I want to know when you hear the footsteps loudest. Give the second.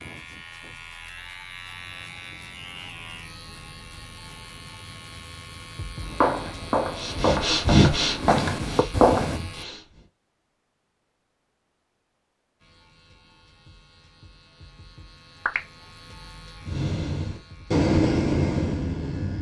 9 s.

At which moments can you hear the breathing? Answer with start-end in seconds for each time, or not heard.
7.0-10.1, 16.6-19.3.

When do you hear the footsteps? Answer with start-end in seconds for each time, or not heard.
6.0-9.3.